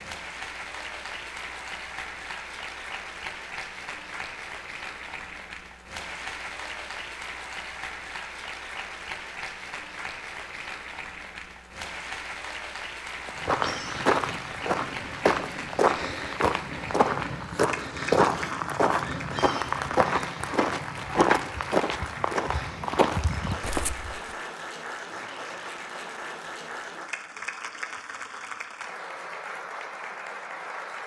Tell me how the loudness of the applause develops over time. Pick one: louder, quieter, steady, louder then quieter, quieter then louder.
steady.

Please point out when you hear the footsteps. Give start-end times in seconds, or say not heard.
13.2-24.4.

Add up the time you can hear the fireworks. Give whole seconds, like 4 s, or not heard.
not heard.